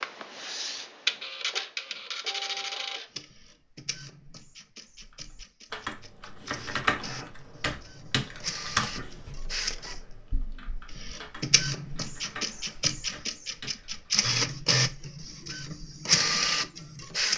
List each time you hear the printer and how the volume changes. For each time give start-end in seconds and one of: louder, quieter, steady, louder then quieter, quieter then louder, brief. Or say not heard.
0.0-17.3 quieter then louder.